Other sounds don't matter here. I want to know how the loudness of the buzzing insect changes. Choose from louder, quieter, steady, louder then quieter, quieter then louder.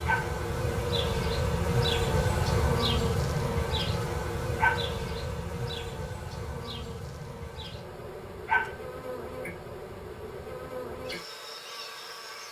quieter.